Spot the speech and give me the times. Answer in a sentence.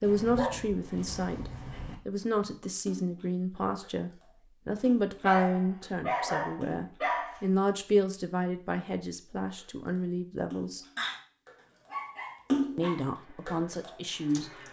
You can hear the speech from 0.0 to 10.8 s and from 12.8 to 14.5 s.